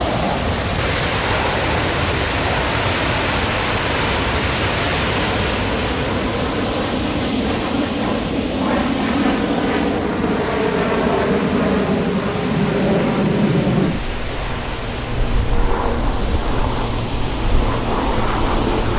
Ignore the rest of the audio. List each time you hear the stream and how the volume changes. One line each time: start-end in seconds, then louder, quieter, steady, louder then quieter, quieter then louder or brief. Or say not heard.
0.0-18.9 quieter.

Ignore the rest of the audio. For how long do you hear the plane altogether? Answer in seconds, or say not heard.
19 s.